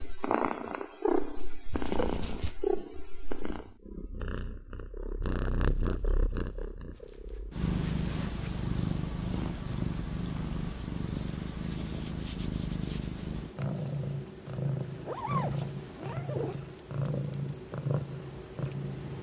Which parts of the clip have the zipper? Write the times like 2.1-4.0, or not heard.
1.7-2.5, 6.9-8.5, 15.1-16.6.